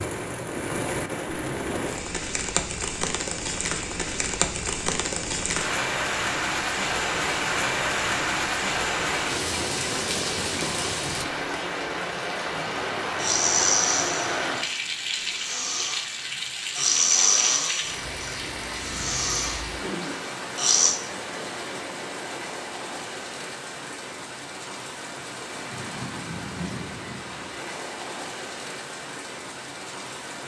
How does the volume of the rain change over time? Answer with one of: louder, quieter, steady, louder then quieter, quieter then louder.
quieter.